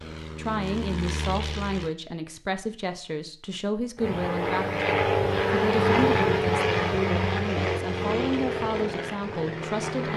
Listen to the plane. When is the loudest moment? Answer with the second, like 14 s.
6 s.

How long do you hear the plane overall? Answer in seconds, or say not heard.
8 s.